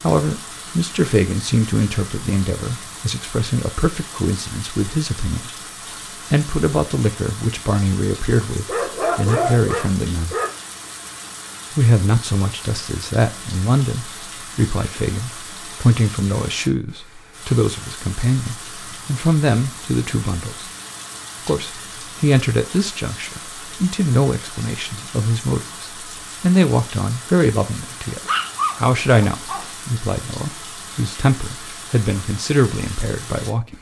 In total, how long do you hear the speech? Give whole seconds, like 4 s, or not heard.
31 s.